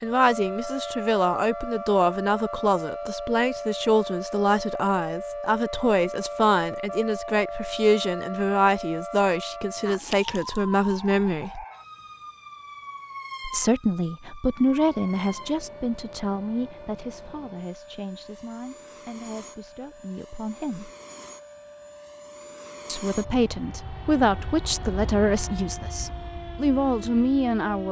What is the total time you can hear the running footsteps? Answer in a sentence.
The running footsteps can't be heard in this clip.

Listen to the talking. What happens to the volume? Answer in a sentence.
The volume of the talking goes down, then up.